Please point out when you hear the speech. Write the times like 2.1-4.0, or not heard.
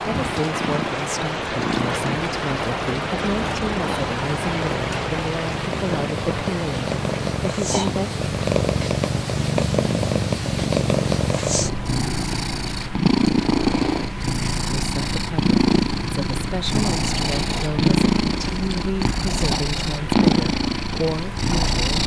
0.1-8.2, 14.7-22.0.